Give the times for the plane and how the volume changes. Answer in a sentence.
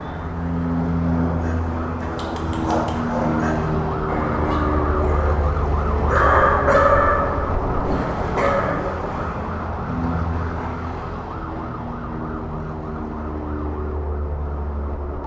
You can hear the plane from 0.0 to 15.2 s, getting quieter.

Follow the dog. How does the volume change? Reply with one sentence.
The volume of the dog goes up, then down.